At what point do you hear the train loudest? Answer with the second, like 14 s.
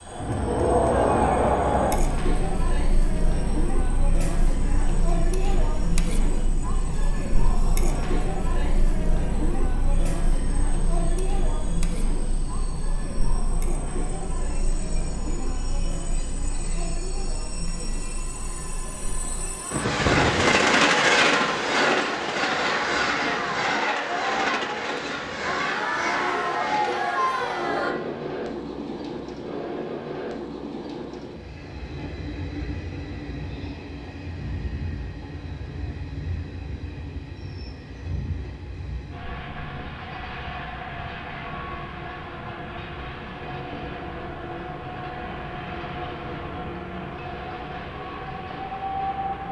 21 s.